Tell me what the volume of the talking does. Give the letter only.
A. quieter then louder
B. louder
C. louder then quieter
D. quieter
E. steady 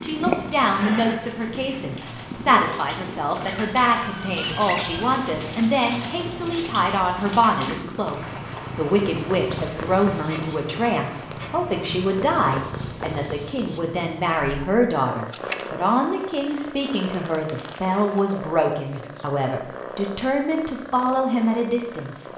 E.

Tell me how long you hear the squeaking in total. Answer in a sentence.
The squeaking can be heard for 5 seconds in total.